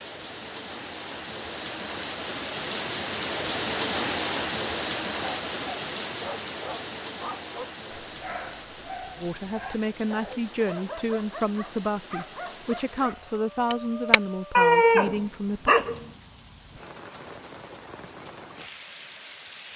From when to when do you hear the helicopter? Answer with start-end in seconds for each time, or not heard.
not heard.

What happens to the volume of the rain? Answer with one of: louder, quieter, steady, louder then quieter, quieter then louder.
quieter.